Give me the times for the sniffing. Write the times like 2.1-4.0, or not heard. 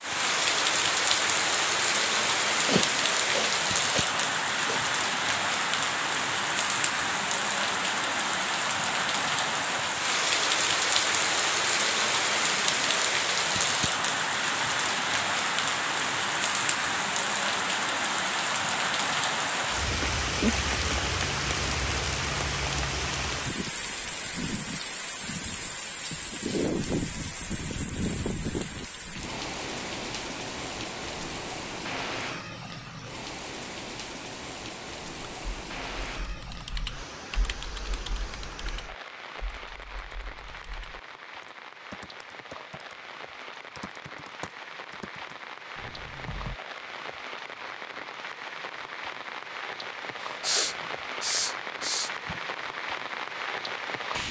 2.2-4.8, 50.2-52.4.